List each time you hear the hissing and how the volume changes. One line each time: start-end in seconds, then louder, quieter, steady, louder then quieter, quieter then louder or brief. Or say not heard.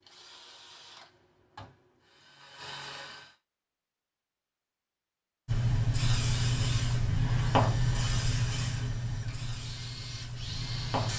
5.5-11.1 quieter.